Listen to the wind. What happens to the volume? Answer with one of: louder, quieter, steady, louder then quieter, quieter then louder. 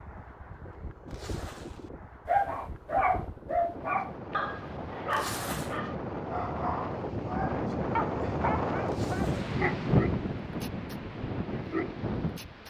louder.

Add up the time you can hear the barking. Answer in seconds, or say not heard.
10 s.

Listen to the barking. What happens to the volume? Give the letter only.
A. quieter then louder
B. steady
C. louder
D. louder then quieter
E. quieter
E.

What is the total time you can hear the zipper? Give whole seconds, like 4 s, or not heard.
2 s.